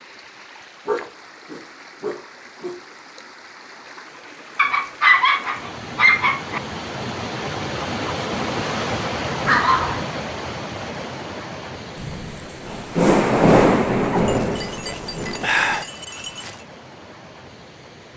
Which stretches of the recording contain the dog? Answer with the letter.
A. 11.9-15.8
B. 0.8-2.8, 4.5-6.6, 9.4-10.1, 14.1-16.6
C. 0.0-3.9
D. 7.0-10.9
B.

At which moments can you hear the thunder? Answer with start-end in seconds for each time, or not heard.
11.9-15.8.